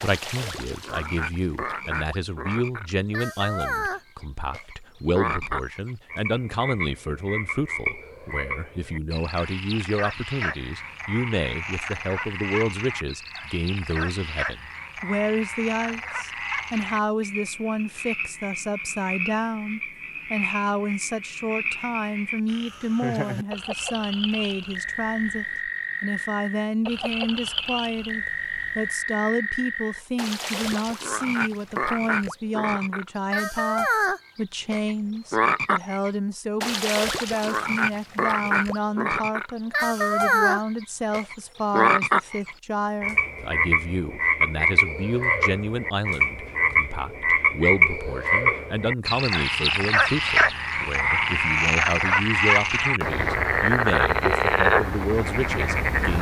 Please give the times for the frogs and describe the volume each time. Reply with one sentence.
The frogs can be heard from 0.0 to 56.1 s, getting louder.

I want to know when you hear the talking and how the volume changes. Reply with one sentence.
The talking can be heard from 0.0 to 56.1 s, at a steady volume.